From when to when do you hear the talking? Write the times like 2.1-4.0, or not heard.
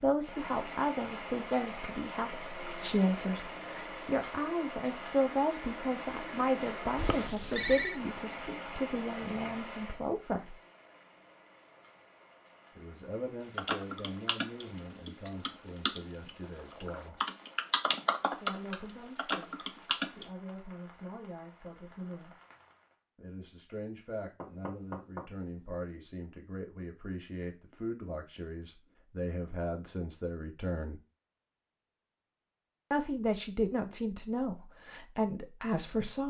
0.0-10.6, 12.8-17.2, 18.4-22.4, 23.1-31.0, 32.9-36.2.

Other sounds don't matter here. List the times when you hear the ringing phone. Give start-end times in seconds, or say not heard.
7.0-8.0.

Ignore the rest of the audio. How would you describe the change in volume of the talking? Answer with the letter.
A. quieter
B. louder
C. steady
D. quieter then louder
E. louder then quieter
D.